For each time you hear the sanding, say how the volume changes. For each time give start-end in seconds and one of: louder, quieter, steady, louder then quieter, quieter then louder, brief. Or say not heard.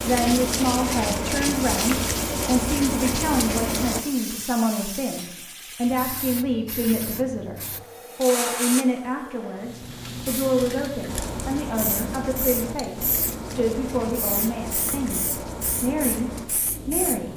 0.0-4.0 steady
11.1-16.5 steady.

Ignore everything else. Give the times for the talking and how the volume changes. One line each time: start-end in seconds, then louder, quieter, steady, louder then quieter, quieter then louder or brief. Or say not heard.
0.0-17.3 steady.